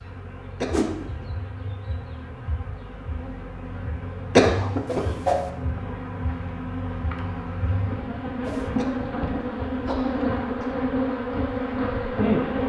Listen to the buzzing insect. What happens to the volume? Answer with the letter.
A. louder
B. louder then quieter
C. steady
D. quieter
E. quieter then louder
A.